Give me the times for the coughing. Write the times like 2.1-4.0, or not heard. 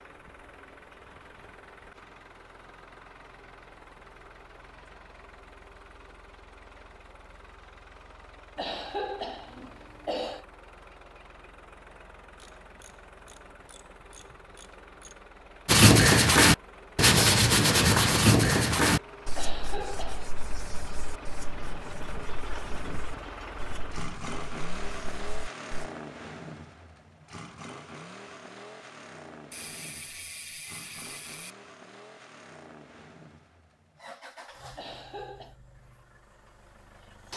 8.6-10.4, 19.4-20.3, 34.8-35.5.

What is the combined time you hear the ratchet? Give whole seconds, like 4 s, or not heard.
5 s.